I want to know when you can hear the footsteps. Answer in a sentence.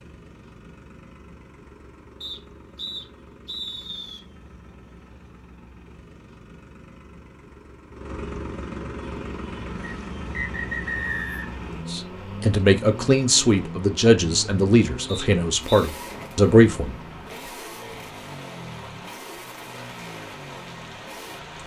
The footsteps can't be heard in this clip.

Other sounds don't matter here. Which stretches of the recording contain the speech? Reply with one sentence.
The speech can be heard from 11.8 to 16.9 s.